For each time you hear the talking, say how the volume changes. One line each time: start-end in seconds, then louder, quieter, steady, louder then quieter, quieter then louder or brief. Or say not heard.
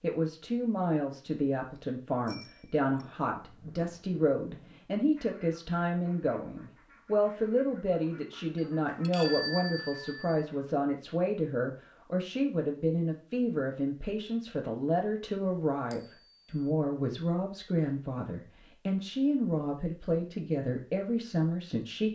0.0-22.1 steady.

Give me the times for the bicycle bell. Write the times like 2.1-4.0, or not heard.
2.2-3.0, 8.6-10.5, 15.9-16.6.